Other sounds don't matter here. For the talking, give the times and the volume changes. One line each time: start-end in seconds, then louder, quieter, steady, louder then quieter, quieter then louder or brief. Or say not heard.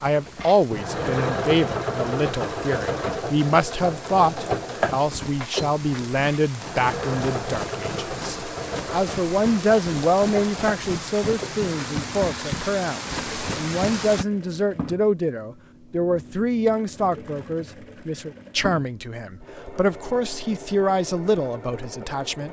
0.0-22.4 steady.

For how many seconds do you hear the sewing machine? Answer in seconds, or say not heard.
22 s.